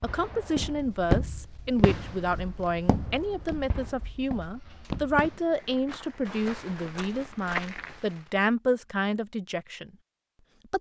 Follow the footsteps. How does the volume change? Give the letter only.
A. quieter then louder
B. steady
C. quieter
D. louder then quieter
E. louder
A.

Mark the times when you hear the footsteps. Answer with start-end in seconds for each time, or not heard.
0.6-8.0.